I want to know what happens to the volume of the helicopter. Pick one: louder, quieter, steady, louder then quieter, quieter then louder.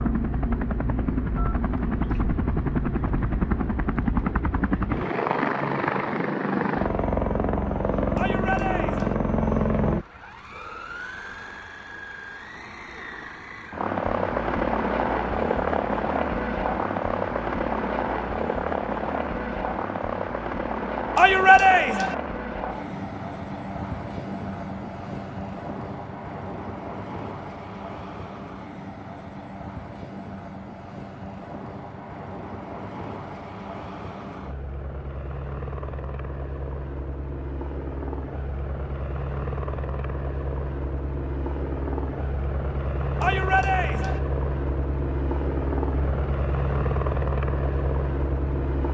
quieter then louder.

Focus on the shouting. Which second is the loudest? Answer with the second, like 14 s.
22 s.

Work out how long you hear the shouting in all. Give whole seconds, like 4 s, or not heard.
3 s.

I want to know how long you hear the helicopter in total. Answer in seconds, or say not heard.
49 s.